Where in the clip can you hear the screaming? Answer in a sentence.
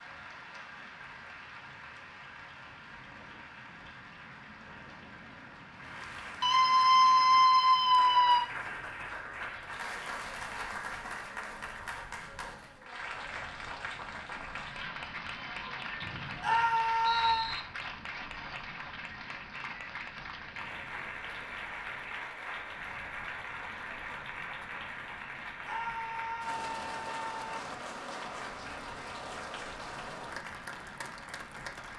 You can hear the screaming from 6.4 to 8.4 s, from 16.4 to 17.5 s and from 25.6 to 27.4 s.